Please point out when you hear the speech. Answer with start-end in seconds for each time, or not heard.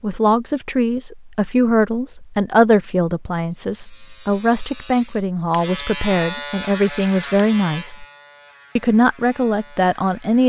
0.0-8.1, 8.8-10.4.